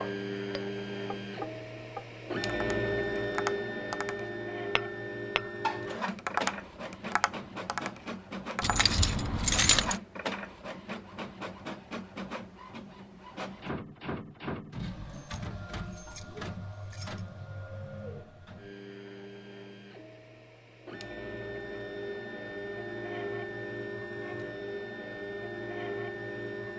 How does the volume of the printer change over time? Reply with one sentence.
The loudness of the printer goes down, then up.